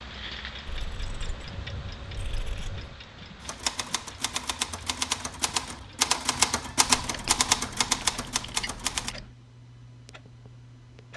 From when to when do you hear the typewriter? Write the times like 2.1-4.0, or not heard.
3.4-9.2.